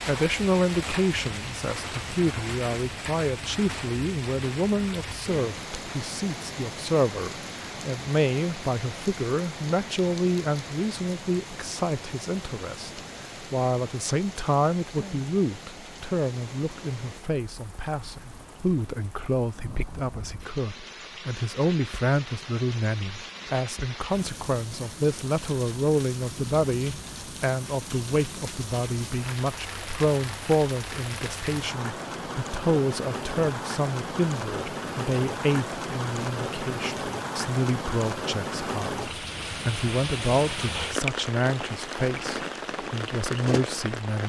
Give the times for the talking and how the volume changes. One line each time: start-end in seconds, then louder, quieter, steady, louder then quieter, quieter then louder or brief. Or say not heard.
0.1-44.2 steady.